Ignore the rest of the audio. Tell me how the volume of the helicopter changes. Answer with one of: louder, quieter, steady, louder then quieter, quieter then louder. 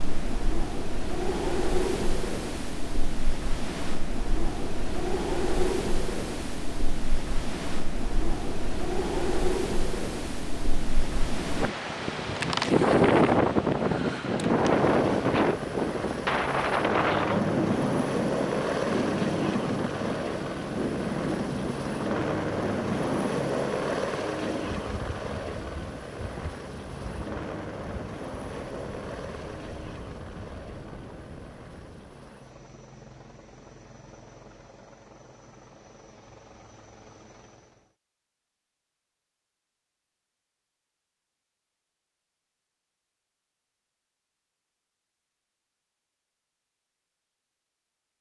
quieter.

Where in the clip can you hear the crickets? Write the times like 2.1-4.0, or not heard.
not heard.